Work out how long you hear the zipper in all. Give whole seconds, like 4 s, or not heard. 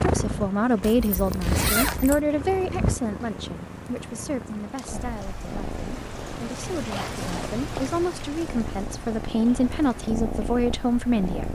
3 s.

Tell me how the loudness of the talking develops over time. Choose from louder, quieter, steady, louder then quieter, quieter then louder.
quieter then louder.